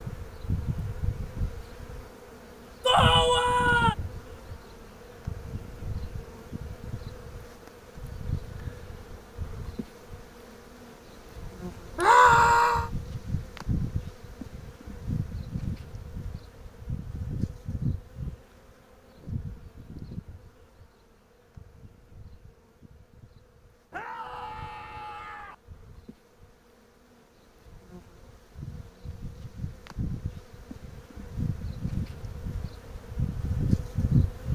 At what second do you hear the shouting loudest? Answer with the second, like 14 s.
12 s.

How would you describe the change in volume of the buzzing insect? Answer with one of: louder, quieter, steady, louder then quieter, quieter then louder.
quieter then louder.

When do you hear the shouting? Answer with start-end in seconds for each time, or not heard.
2.9-4.0, 11.9-12.9, 23.9-25.6.